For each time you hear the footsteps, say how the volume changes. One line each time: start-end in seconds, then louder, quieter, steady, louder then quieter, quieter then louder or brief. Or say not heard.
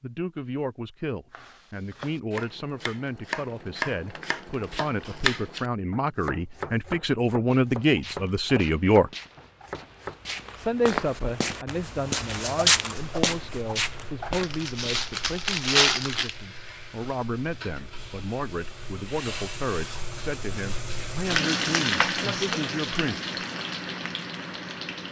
7.5-15.1 louder then quieter.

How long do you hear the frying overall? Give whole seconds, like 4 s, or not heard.
12 s.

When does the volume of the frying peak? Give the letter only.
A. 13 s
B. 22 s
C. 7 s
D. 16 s
B.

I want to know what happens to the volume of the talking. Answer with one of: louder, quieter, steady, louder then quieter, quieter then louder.
louder then quieter.